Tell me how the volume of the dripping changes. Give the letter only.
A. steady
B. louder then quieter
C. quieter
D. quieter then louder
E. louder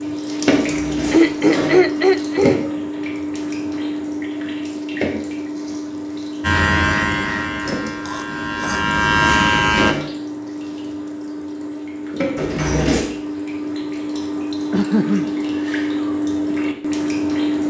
D.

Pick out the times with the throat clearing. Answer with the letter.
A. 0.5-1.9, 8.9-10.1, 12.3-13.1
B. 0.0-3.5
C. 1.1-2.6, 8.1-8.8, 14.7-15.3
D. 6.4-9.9
C.